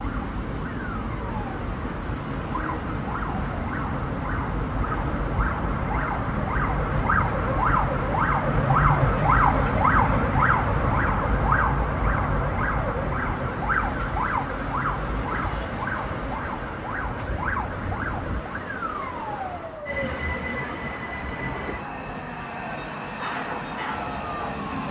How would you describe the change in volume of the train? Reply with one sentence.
The volume of the train stays about the same.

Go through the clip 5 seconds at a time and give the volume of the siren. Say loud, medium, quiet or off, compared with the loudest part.
medium, loud, loud, medium, quiet.